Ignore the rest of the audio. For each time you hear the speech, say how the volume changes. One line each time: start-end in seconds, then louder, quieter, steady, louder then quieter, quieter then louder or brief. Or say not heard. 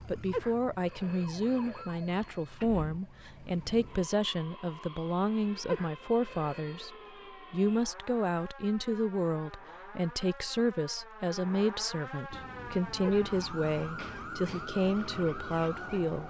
0.1-6.9 steady
7.5-16.2 steady.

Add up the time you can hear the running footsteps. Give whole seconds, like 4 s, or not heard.
not heard.